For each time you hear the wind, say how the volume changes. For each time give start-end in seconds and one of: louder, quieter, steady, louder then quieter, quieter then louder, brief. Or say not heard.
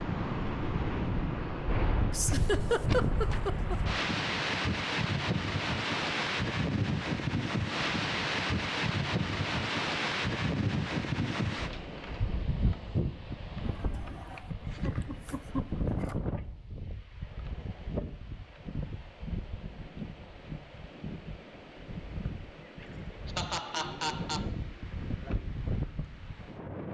0.0-26.9 quieter.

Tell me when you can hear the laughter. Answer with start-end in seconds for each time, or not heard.
2.1-3.8, 13.6-16.1, 23.2-24.4.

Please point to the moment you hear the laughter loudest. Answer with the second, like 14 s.
3 s.